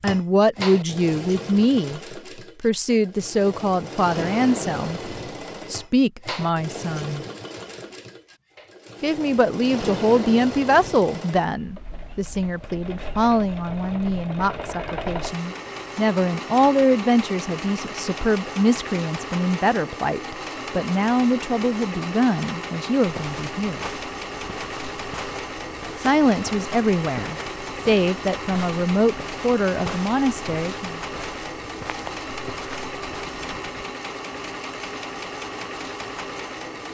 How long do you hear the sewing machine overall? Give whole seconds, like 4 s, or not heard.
37 s.